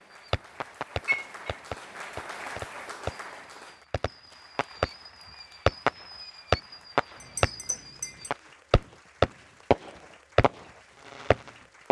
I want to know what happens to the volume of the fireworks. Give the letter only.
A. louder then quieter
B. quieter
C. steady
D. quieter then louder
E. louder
E.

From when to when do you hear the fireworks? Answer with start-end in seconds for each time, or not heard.
0.2-11.8.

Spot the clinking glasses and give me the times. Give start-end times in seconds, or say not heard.
1.1-1.6, 7.2-8.3.